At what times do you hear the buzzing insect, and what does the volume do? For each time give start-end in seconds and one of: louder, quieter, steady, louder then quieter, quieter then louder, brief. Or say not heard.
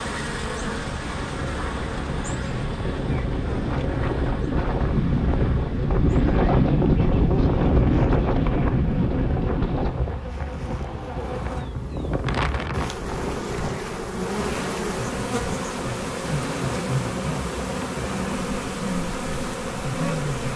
0.0-20.5 quieter then louder.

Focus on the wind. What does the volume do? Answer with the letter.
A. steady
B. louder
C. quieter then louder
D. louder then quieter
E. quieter
D.